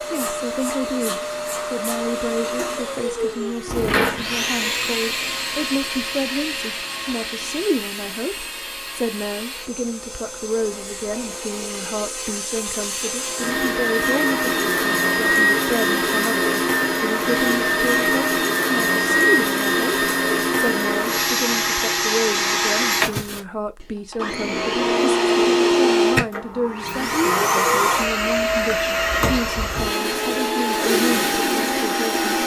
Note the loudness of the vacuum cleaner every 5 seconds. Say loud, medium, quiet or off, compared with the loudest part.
medium, medium, medium, loud, loud, loud, loud.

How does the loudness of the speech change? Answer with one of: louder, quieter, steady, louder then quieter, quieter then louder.
steady.